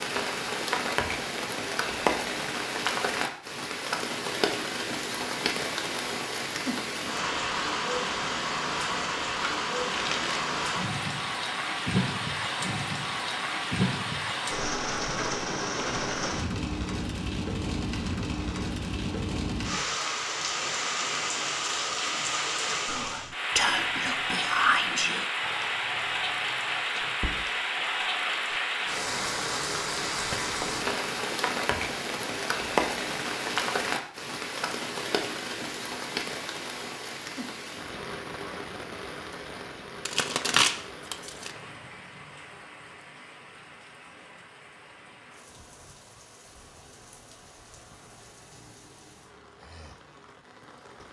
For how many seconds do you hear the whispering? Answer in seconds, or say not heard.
6 s.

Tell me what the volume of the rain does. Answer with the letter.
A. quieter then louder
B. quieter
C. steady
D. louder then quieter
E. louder
B.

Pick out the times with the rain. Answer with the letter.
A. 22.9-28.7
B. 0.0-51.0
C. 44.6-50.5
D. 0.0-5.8
B.